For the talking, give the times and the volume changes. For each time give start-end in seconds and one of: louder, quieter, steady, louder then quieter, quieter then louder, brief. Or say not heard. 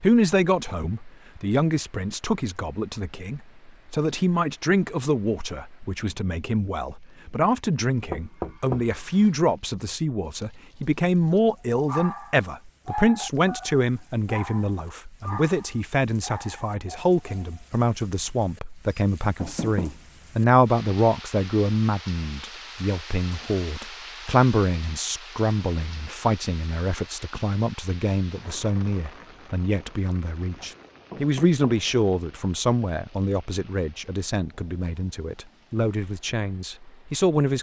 0.0-37.5 steady.